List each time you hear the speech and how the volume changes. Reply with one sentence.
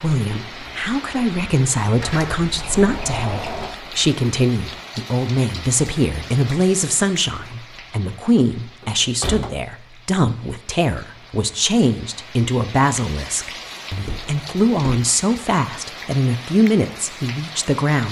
You can hear the speech from 0.0 to 18.0 s, at a steady volume.